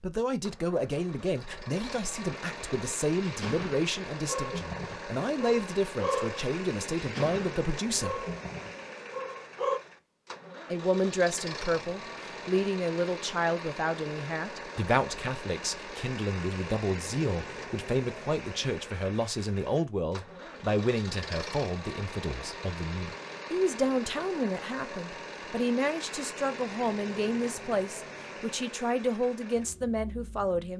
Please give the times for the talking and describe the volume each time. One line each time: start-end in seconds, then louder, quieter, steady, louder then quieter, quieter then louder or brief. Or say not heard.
0.0-8.2 steady
10.7-30.7 steady.